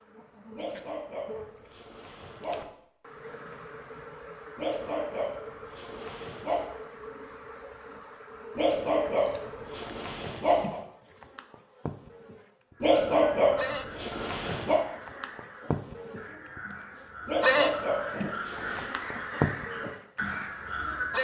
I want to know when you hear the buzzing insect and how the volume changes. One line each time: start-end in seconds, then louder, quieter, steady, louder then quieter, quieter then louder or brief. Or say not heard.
0.0-21.1 louder.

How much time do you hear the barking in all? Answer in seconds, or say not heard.
10 s.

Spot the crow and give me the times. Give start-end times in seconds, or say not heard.
12.7-21.1.